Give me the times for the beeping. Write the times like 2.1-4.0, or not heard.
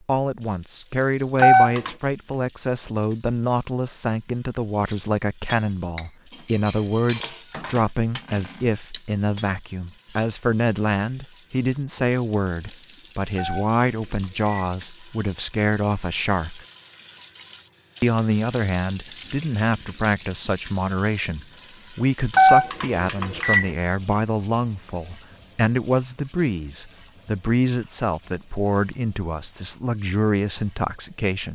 1.4-1.9, 13.3-14.7, 22.3-23.7.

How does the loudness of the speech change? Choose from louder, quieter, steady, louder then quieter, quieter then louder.
steady.